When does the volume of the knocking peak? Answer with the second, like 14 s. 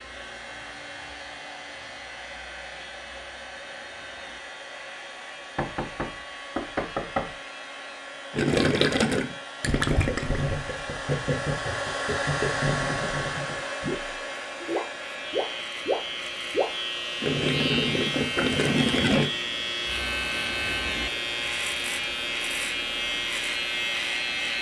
7 s.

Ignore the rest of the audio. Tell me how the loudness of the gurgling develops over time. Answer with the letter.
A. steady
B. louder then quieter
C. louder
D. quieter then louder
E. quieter
D.